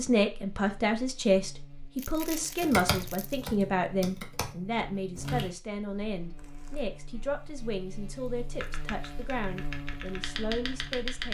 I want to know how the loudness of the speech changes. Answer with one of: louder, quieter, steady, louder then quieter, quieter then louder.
quieter.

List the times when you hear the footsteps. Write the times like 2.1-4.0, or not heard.
not heard.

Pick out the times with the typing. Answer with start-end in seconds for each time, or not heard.
2.6-5.5, 8.6-11.2.